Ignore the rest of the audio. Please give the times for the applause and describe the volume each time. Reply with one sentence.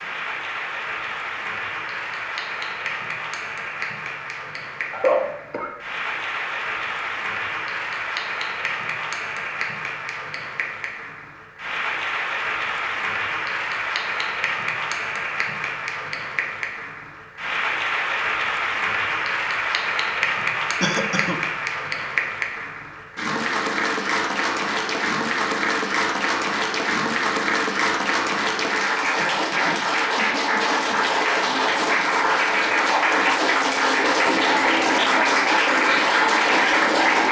You can hear the applause from 0.0 to 37.2 s, getting louder.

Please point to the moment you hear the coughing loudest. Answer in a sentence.
The volume of the coughing peaks at 5 seconds.